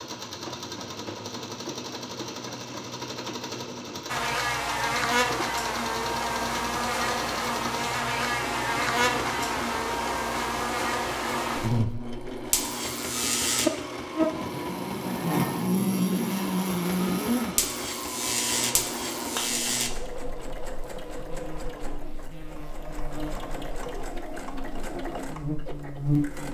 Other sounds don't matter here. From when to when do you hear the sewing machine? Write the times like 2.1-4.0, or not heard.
0.0-26.5.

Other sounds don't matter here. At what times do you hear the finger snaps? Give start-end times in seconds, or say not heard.
18.5-19.6.